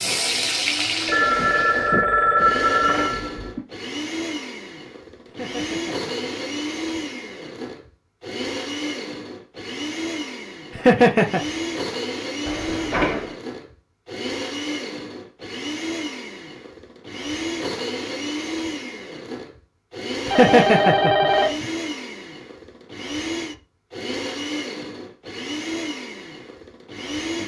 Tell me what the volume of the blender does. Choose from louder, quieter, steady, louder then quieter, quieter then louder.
steady.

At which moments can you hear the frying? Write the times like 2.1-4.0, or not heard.
0.0-2.0.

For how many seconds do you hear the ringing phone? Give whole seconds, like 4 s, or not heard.
5 s.